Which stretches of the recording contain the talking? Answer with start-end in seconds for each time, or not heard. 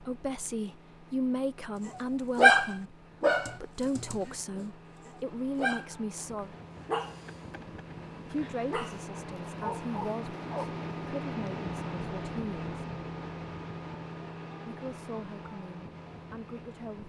0.0-6.5, 8.2-12.8, 14.7-17.0.